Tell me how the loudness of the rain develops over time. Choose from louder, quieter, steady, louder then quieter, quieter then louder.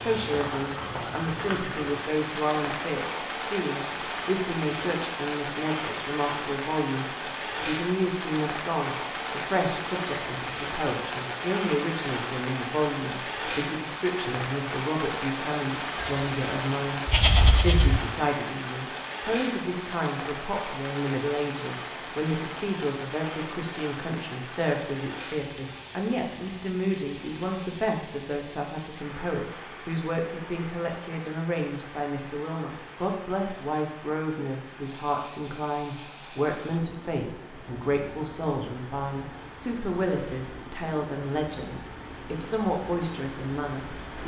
quieter.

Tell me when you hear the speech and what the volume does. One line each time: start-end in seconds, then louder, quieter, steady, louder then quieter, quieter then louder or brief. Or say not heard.
0.0-44.2 steady.